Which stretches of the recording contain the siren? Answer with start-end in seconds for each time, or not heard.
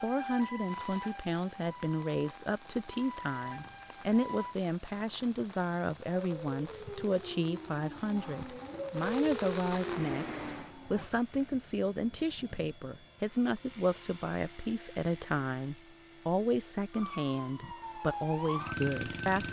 0.0-4.5, 6.1-11.1, 16.9-19.4.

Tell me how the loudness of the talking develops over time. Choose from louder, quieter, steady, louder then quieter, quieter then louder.
steady.